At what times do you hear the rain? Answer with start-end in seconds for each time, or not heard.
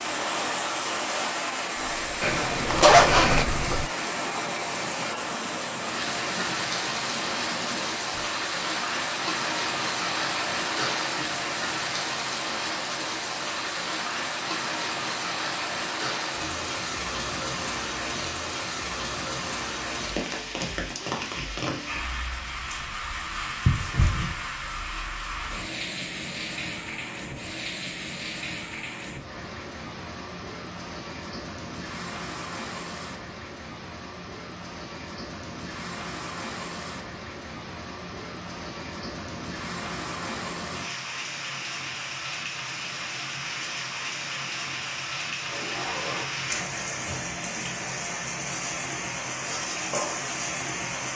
0.0-51.1.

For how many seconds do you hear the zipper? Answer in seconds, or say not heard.
4 s.